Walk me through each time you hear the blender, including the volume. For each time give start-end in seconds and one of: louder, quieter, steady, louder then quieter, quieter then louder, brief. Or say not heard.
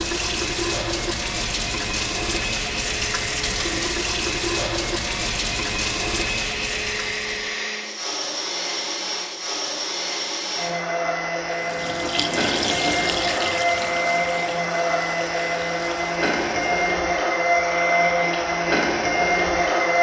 0.0-19.9 louder.